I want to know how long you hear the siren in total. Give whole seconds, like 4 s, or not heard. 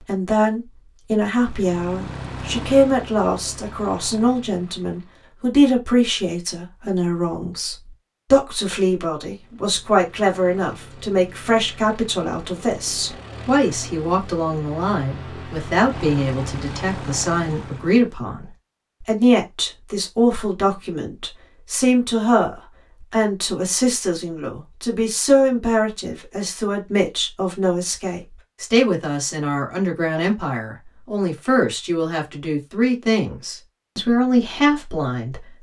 not heard.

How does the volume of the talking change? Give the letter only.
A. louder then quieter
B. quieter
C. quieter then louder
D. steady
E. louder
D.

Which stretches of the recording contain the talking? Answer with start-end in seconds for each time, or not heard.
0.0-35.5.